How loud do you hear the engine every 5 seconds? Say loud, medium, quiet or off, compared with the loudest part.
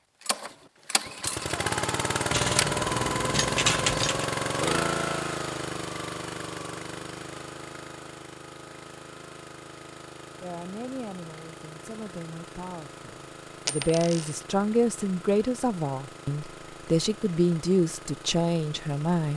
loud, medium, quiet, quiet.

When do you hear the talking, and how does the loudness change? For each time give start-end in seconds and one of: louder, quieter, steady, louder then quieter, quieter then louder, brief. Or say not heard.
10.4-19.3 louder.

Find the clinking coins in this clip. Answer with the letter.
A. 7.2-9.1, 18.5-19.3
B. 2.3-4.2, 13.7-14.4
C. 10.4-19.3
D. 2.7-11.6
B.